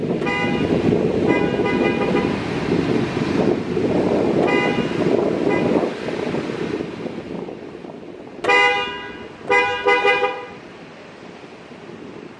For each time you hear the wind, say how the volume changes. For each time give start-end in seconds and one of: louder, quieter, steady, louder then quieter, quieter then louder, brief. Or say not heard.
0.0-12.3 quieter.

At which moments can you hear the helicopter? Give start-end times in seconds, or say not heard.
not heard.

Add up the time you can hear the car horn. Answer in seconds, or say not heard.
5 s.